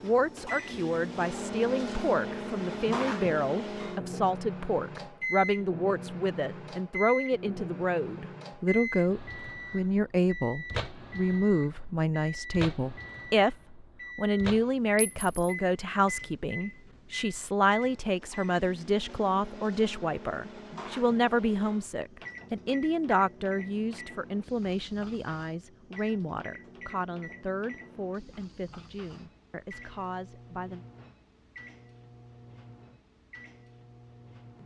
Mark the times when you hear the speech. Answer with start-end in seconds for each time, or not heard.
0.0-30.9.